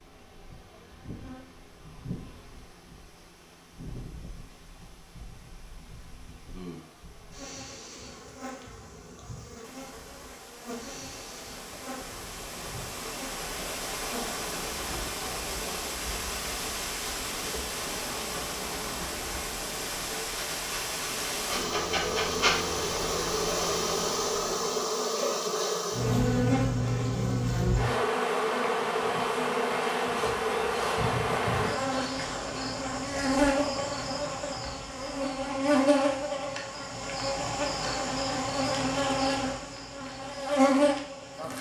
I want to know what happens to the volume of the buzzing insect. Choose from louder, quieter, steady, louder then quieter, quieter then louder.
louder.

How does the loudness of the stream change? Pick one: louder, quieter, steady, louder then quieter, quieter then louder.
louder.